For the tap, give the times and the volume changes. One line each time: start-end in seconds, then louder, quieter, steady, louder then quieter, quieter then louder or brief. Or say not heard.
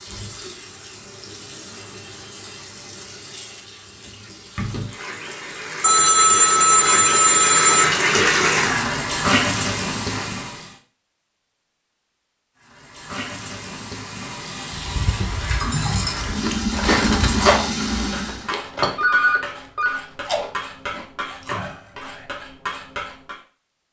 0.0-10.8 louder
12.6-18.5 louder.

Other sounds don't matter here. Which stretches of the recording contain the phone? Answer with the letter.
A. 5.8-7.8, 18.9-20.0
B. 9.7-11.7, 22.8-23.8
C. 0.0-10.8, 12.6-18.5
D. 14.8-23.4
A.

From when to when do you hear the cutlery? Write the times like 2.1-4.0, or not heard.
14.8-23.4.